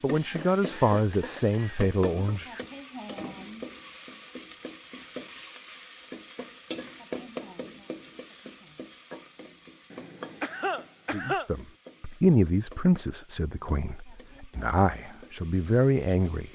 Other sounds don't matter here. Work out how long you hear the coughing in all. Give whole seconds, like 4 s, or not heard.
3 s.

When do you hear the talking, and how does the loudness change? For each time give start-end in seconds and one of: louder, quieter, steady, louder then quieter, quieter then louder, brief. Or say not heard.
0.0-2.6 brief
11.1-16.4 quieter then louder.